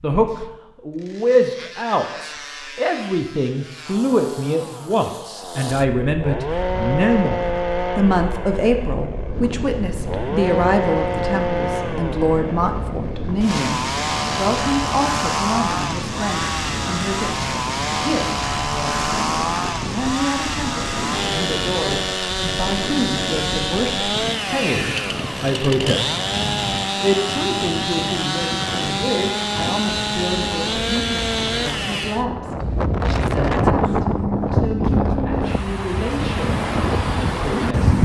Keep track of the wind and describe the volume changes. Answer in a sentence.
The loudness of the wind goes up.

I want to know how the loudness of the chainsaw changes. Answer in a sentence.
The loudness of the chainsaw goes up.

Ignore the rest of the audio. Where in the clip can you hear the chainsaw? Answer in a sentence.
You can hear the chainsaw from 0.1 to 32.2 s.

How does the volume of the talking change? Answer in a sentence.
The volume of the talking goes down.